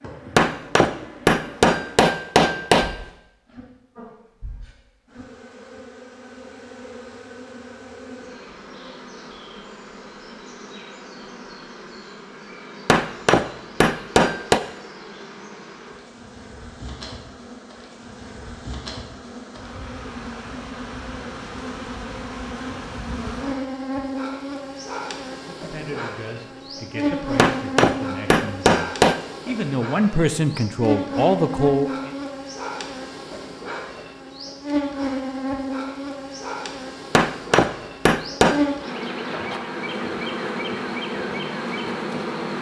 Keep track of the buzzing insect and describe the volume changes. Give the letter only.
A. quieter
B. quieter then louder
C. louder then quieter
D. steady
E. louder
E.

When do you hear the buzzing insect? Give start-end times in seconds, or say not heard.
0.0-42.5.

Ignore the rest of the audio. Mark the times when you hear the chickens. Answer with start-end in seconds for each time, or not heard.
not heard.